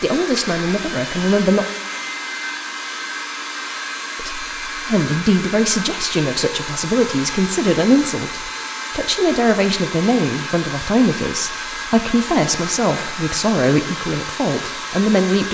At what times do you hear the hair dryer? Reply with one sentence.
You can hear the hair dryer from 0.0 to 15.4 s.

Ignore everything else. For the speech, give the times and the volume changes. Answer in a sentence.
You can hear the speech briefly from 0.0 to 1.6 s; and from 4.2 to 15.4 s, at a steady volume.